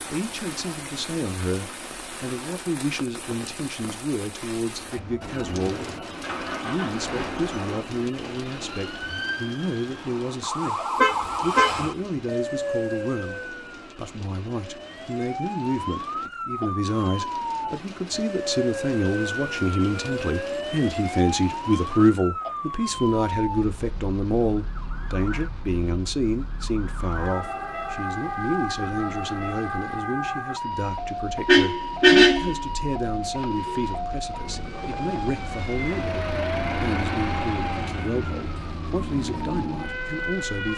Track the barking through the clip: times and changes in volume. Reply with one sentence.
You can't hear the barking here.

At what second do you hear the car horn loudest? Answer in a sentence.
The volume of the car horn peaks at 32 seconds.